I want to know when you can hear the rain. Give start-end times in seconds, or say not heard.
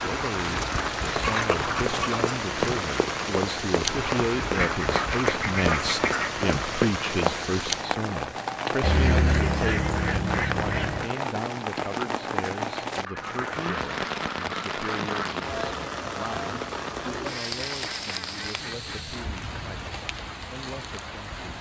0.0-21.5.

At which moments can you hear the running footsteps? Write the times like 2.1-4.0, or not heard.
1.1-7.5.